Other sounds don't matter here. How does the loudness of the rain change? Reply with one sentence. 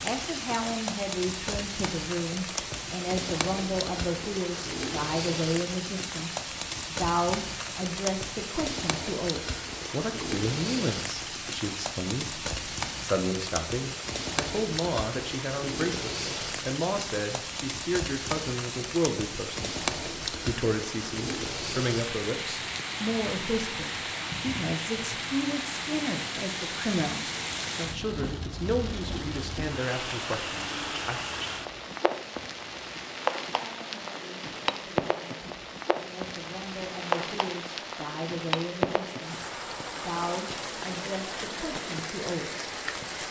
The volume of the rain stays about the same.